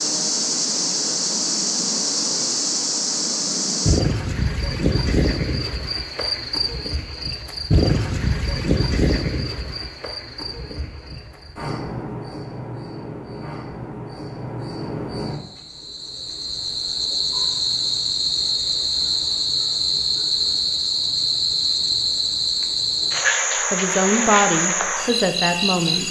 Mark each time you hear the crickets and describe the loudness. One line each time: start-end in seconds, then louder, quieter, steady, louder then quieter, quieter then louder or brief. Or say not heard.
0.0-26.0 quieter then louder.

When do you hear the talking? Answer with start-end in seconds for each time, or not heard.
23.7-26.0.